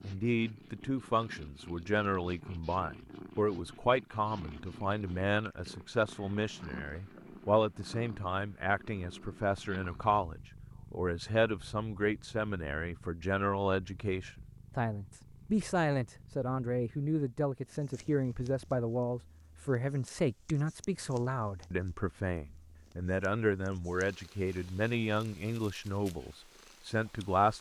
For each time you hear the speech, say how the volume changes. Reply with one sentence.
The speech can be heard from 0.0 to 27.5 s, at a steady volume.